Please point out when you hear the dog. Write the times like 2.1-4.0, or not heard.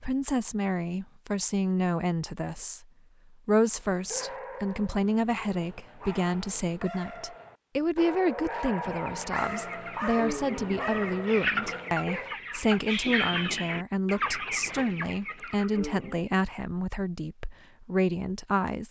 3.7-12.3.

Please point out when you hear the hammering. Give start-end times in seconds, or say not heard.
not heard.